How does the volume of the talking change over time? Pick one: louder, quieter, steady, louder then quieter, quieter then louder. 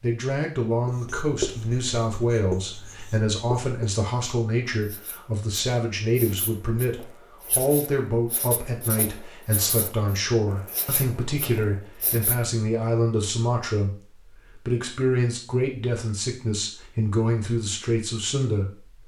steady.